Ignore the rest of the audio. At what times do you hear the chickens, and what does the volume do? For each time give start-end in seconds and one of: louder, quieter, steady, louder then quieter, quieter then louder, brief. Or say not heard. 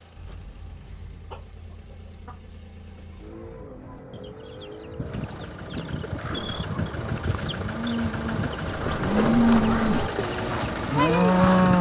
0.1-11.4 louder.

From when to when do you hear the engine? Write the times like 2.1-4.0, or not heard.
0.0-11.7.